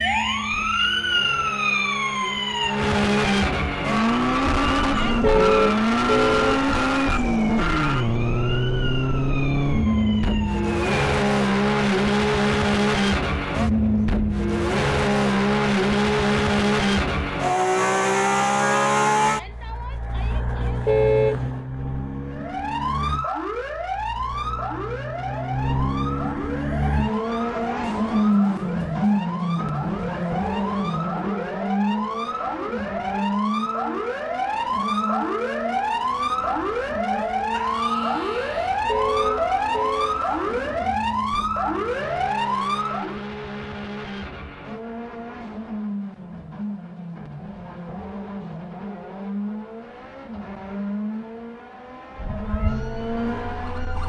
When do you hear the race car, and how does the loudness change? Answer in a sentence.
The race car can be heard from 0.0 to 54.0 s, getting quieter.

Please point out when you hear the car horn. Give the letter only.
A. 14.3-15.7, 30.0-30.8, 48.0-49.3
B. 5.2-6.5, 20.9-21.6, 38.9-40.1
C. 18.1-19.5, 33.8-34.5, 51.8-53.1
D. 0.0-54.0
B.